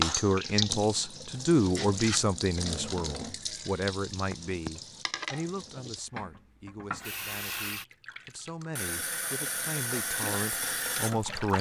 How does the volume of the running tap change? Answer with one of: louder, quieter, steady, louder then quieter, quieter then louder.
quieter then louder.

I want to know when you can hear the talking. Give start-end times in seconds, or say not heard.
0.0-11.5.